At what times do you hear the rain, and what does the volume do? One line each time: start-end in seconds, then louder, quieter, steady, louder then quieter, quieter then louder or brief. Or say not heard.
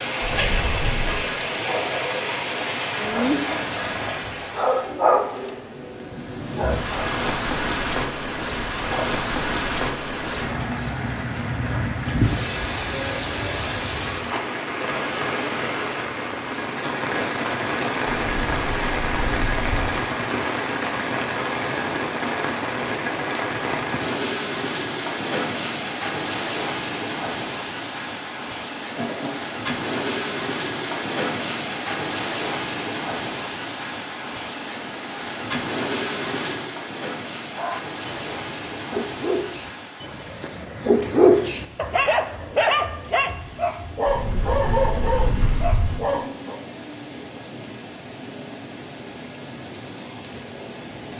0.0-51.1 quieter.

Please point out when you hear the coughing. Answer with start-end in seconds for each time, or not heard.
28.9-29.5.